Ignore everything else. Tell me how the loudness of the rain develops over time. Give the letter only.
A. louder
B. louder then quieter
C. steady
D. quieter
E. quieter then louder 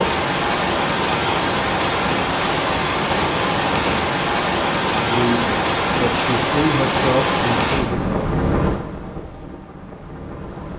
D.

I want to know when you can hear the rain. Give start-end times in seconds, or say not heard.
0.0-10.7.